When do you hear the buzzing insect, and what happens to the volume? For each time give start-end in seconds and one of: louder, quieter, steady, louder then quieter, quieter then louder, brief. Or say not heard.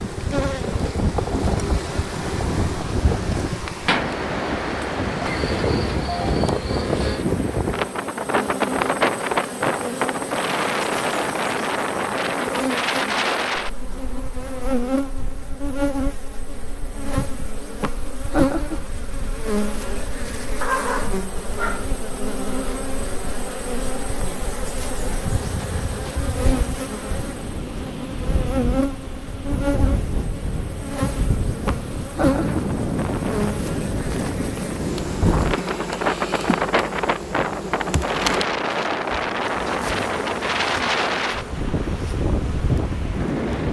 0.0-43.6 steady.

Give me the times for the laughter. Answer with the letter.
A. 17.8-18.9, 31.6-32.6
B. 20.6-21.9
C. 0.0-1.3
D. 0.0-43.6
A.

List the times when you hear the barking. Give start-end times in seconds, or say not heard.
20.6-21.9.